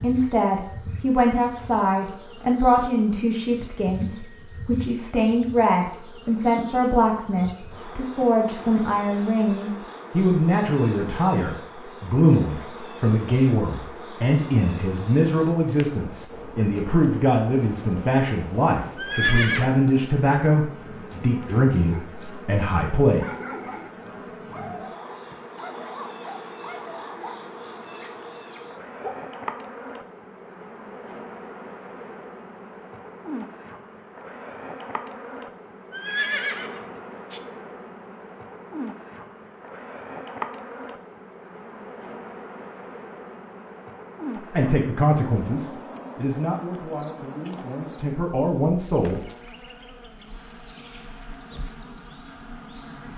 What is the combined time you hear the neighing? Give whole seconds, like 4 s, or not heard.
2 s.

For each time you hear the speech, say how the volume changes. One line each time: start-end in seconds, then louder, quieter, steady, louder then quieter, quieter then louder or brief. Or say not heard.
0.0-23.2 steady
44.4-49.2 quieter then louder.